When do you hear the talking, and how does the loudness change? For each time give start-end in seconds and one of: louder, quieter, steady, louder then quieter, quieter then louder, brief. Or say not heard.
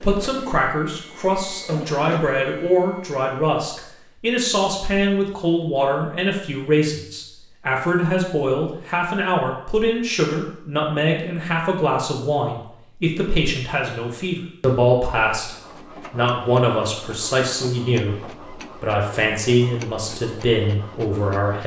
0.0-21.6 steady.